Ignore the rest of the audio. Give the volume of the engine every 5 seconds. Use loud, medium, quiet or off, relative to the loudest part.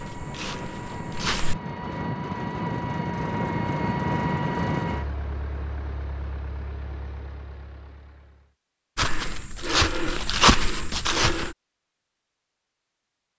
loud, quiet, off.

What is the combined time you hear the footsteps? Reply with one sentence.
You can hear the footsteps for 4 seconds altogether.